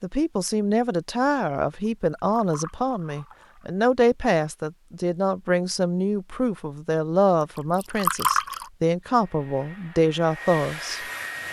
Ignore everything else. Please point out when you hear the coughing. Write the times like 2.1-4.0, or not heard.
not heard.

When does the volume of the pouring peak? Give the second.
8 s.